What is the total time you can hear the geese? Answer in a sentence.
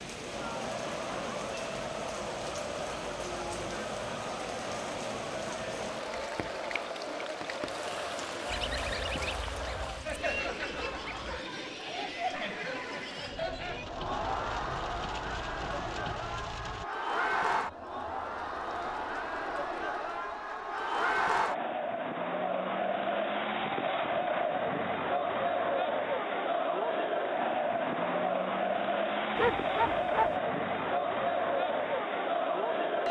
You can hear the geese for 3 seconds altogether.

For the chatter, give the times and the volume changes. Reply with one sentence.
You can hear the chatter from 0.0 to 33.0 s, getting louder.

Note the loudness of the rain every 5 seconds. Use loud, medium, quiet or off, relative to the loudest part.
loud, loud, medium, loud, off, off, off.